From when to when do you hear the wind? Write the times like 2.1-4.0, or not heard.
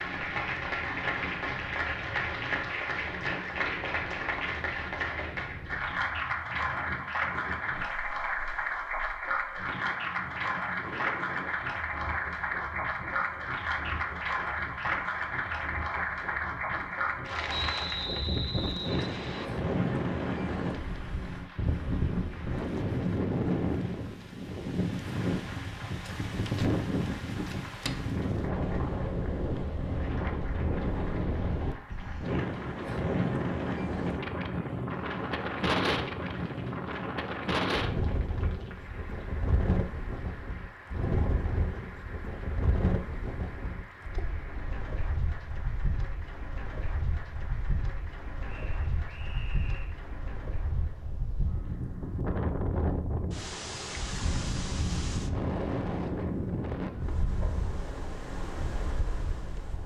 0.0-59.8.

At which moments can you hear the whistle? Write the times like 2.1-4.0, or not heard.
17.4-19.5, 48.5-50.0.